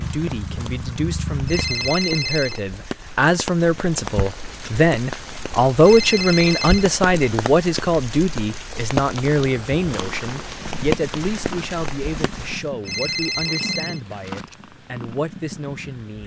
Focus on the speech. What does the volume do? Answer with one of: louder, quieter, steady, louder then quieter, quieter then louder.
louder then quieter.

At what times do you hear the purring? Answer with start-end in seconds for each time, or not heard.
0.0-1.9, 9.2-16.2.